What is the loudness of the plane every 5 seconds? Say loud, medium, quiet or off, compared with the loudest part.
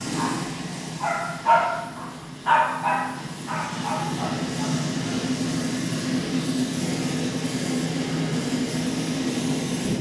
medium, loud.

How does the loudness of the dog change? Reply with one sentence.
The loudness of the dog goes up, then down.